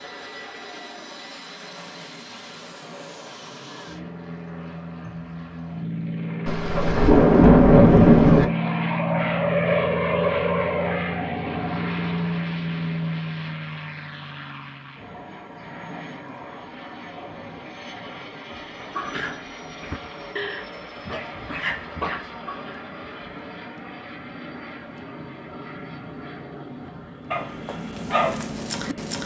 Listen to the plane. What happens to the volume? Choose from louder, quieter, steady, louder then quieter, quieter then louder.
louder then quieter.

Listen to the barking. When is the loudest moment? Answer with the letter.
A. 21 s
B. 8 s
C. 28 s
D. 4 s
C.